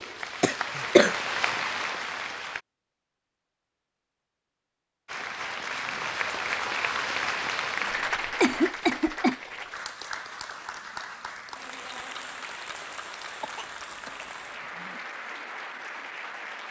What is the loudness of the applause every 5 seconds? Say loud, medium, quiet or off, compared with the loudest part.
loud, loud, medium, medium.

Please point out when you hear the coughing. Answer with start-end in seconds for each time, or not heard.
0.4-1.1, 8.4-9.3, 13.4-15.1.